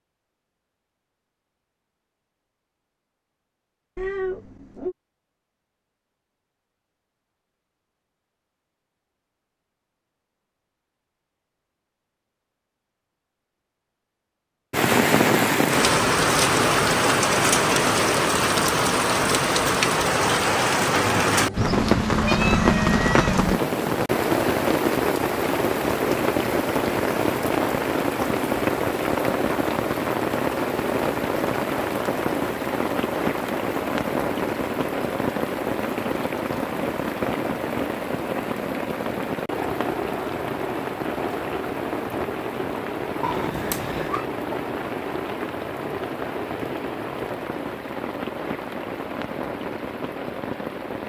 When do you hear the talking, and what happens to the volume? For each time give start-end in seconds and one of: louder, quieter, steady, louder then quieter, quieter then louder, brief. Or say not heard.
not heard.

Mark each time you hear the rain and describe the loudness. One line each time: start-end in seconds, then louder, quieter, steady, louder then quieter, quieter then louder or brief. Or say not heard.
14.7-51.0 quieter.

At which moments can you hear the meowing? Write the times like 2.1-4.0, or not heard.
4.0-5.0, 21.6-23.6, 43.2-44.2.